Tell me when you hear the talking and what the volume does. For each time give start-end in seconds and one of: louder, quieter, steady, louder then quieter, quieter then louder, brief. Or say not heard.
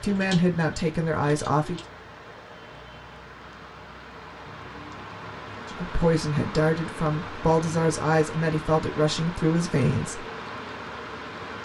0.0-1.8 brief
5.7-10.2 steady.